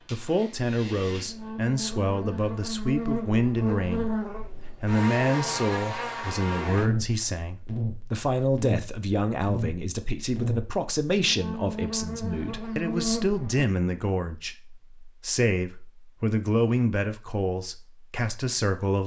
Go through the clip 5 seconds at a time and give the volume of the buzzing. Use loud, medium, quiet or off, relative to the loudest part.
loud, loud, loud, off.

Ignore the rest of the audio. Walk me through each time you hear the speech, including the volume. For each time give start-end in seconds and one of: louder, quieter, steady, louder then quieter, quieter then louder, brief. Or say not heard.
0.1-19.0 steady.